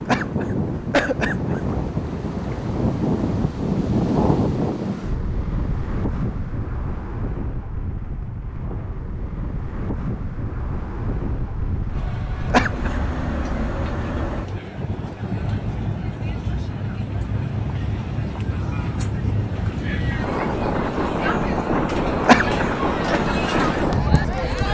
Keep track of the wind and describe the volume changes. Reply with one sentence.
The volume of the wind goes down, then up.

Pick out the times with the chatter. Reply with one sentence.
The chatter can be heard from 11.8 to 24.6 s.